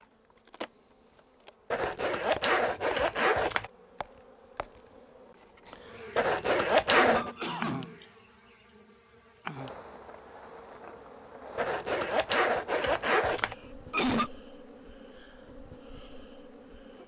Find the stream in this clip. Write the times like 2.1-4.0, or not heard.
not heard.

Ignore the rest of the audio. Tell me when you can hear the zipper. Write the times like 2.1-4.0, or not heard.
1.7-3.7, 6.2-7.3, 11.6-13.6.